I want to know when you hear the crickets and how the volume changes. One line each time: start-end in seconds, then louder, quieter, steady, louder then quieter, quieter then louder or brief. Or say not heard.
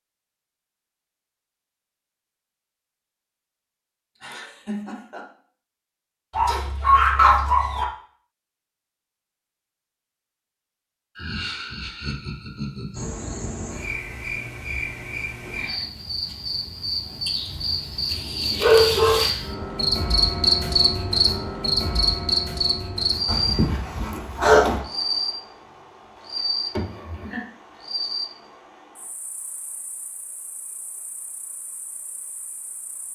12.9-33.1 louder then quieter.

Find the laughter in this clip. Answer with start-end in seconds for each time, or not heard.
4.2-5.2, 11.2-13.1, 26.7-27.4.